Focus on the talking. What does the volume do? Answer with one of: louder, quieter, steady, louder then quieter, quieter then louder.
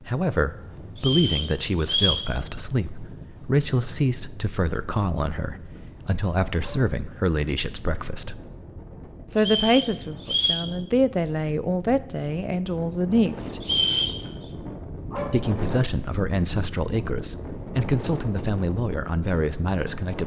steady.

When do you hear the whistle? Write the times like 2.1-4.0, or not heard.
0.9-2.2, 9.3-10.7, 13.6-14.2.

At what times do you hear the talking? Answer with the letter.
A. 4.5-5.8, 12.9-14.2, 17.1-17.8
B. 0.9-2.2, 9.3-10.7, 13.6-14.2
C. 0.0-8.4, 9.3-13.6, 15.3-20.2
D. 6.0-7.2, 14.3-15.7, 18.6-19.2
C.